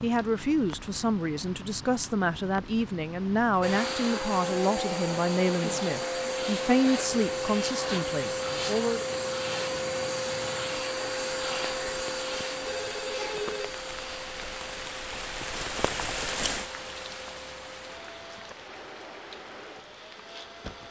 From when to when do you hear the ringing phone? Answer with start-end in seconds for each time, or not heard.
12.7-13.7.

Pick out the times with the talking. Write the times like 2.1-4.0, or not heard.
0.0-9.1.